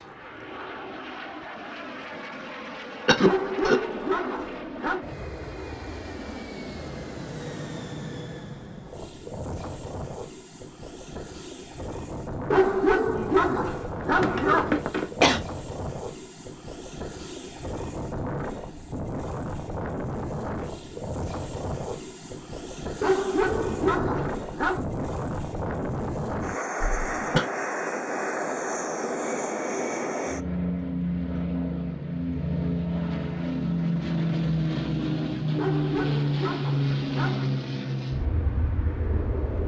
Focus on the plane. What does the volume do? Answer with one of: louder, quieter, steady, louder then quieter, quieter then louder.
louder.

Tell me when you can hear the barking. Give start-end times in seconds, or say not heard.
3.2-5.0, 12.5-14.7, 23.0-24.9, 35.5-37.6.